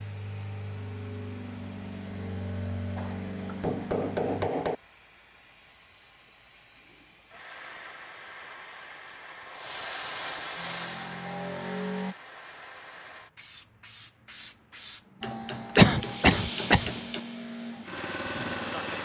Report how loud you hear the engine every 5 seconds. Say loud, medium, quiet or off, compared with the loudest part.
loud, off, loud, loud.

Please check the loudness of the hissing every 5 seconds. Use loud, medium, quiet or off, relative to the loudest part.
quiet, medium, medium, loud.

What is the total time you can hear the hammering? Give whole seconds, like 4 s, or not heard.
4 s.